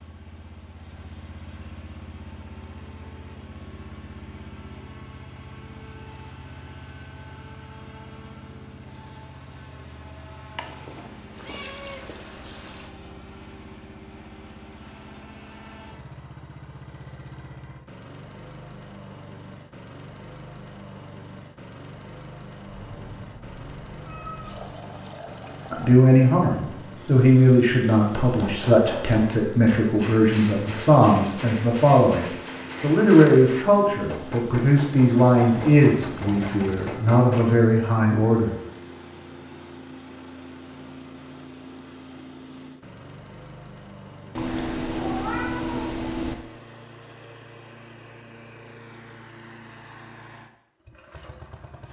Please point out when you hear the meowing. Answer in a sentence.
The meowing can be heard from 10.6 to 12.2 s, from 22.9 to 24.7 s and from 44.4 to 46.4 s.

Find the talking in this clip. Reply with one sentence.
The talking can be heard from 25.7 to 38.5 s.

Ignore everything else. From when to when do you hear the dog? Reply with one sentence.
You can't hear the dog here.